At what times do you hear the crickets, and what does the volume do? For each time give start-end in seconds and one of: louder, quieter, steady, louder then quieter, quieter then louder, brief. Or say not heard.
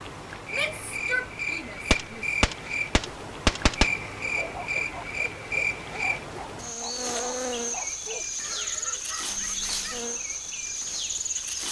0.0-11.6 steady.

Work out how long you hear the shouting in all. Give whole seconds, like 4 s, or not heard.
2 s.